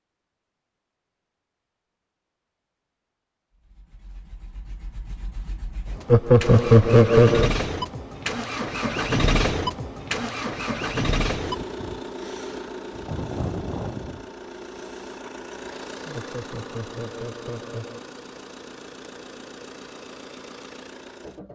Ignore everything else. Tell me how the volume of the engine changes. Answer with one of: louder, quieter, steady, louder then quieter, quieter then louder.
louder then quieter.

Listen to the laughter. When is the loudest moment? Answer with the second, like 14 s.
7 s.